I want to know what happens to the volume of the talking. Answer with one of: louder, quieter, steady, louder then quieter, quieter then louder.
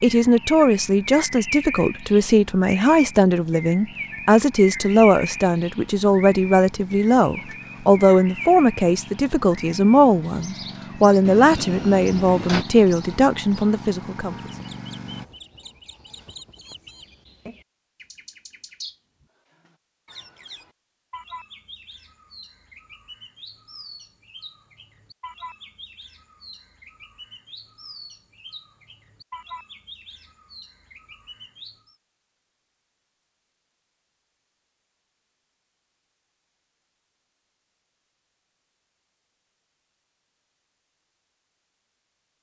steady.